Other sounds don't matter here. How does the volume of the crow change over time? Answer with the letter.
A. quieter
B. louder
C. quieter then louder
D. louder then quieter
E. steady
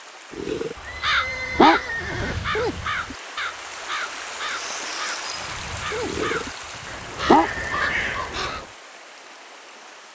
C.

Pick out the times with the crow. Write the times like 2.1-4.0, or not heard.
1.0-8.7.